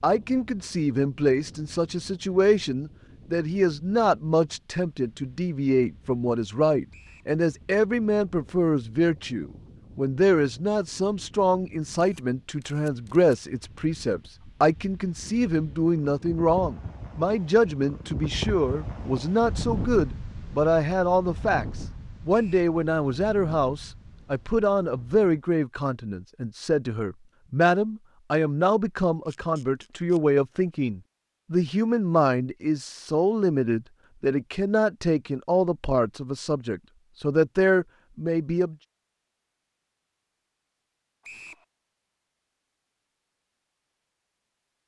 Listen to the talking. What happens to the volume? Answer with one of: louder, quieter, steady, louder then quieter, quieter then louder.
steady.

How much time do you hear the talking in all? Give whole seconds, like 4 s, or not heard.
39 s.